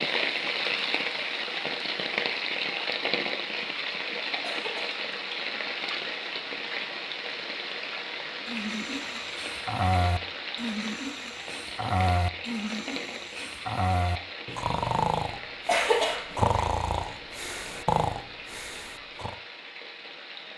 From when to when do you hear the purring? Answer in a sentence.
You can't hear the purring here.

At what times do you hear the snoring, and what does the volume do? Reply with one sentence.
The snoring can be heard from 8.4 to 19.4 s, at a steady volume.